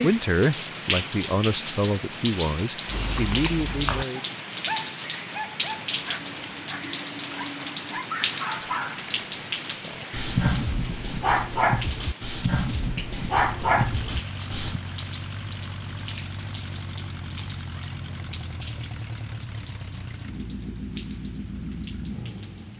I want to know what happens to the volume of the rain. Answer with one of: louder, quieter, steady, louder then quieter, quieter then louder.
quieter.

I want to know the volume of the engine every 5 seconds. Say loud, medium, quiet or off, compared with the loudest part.
off, off, loud, loud, loud.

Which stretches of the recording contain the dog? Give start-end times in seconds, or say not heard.
2.9-14.8.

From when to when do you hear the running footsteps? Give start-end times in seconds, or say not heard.
not heard.